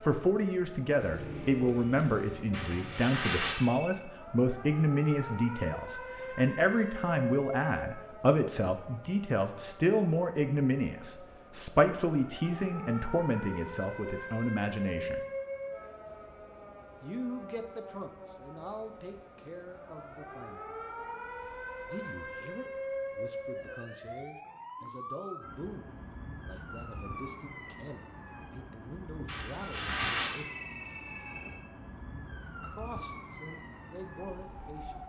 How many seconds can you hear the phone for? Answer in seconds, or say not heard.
4 s.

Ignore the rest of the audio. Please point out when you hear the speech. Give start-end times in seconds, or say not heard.
0.0-15.2, 17.0-20.8, 21.9-30.6, 32.6-35.0.